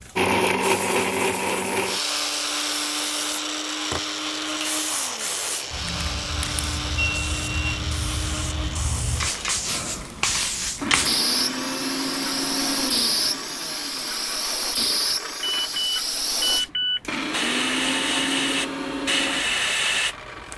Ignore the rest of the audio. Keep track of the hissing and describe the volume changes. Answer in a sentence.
The loudness of the hissing goes up.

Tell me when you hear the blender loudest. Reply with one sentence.
The loudest moment of the blender is at 1 second.